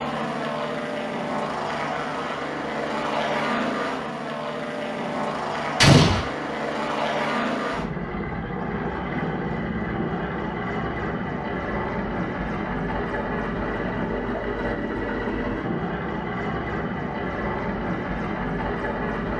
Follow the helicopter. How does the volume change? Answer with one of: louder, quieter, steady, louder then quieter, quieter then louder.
steady.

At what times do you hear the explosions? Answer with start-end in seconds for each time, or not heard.
5.8-6.2.